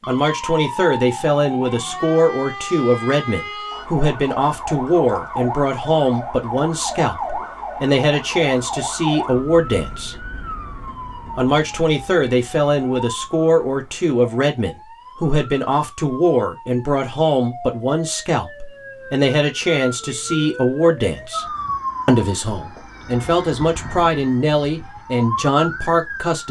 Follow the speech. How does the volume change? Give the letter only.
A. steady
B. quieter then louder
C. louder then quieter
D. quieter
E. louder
A.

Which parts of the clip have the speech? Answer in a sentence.
The speech can be heard from 0.1 to 10.2 s, from 11.3 to 21.4 s and from 22.1 to 26.4 s.